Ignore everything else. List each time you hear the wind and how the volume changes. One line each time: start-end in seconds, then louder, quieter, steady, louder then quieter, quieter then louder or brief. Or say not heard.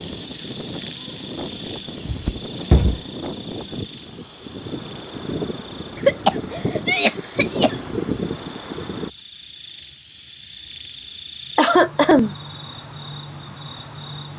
0.0-9.1 louder.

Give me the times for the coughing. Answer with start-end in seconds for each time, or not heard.
2.0-3.0, 6.0-7.8, 11.6-12.3.